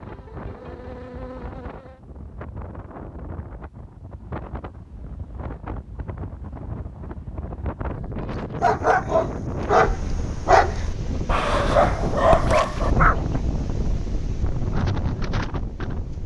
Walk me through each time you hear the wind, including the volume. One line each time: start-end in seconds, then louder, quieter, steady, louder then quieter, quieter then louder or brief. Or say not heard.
0.0-16.2 louder.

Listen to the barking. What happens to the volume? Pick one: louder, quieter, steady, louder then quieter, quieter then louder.
quieter then louder.